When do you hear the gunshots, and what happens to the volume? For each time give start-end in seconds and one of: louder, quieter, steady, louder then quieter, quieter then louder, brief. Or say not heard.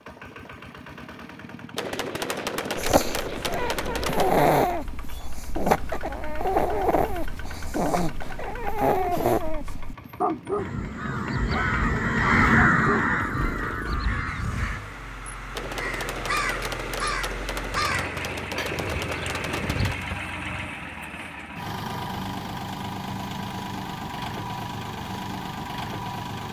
1.8-4.5 brief
15.6-20.1 steady.